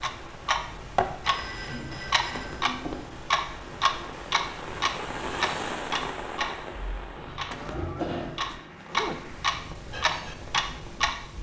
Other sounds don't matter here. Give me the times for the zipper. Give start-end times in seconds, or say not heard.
2.3-3.1, 7.5-9.3.